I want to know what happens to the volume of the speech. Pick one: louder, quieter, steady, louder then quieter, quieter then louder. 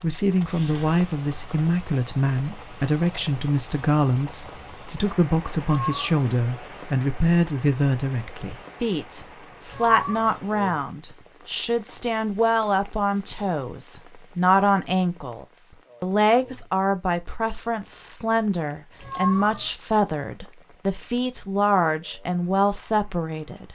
steady.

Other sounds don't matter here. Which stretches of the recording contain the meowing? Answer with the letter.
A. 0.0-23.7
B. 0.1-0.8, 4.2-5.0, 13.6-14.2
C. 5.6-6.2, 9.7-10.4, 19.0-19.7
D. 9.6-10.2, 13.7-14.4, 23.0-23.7
C.